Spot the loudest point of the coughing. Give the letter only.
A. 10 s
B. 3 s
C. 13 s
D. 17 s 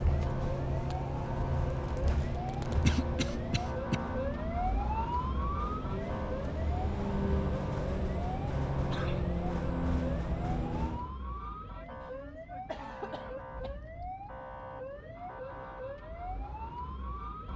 B.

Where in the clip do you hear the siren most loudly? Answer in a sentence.
The volume of the siren peaks at 5 seconds.